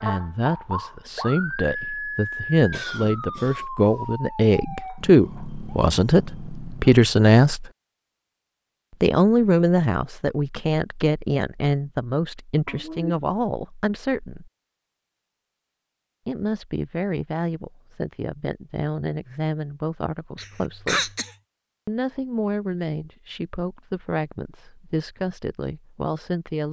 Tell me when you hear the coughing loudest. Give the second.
21 s.